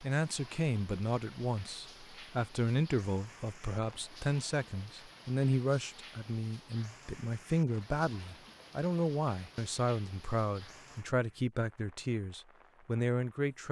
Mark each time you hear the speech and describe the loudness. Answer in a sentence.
You can hear the speech from 0.0 to 13.6 s, at a steady volume.